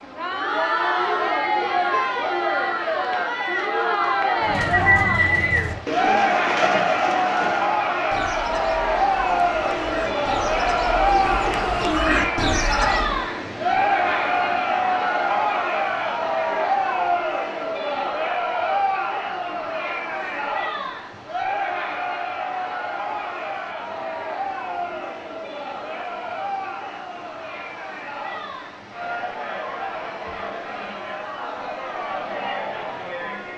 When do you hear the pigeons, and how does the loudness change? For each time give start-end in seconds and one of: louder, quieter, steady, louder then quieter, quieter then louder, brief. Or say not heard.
4.4-13.2 quieter then louder.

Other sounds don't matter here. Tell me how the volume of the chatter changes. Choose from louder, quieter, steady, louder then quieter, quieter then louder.
quieter.